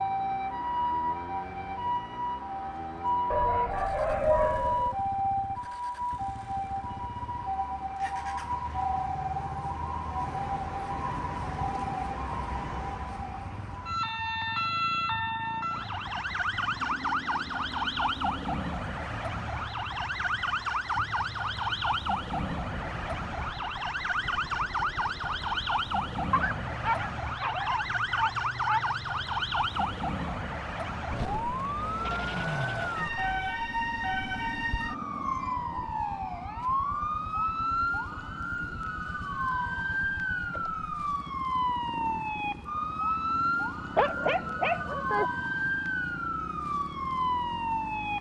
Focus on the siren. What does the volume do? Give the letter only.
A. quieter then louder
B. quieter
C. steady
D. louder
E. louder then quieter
C.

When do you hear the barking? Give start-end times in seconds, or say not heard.
3.3-5.0, 26.3-28.9, 44.0-45.2.